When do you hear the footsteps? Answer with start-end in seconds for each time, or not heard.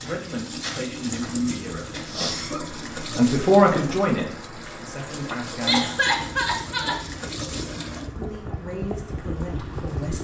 0.0-2.5.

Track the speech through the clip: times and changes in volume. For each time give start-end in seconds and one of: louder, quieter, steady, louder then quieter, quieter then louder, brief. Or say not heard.
0.0-5.8 louder then quieter
8.2-10.1 brief.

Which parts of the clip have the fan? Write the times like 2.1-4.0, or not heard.
2.6-10.1.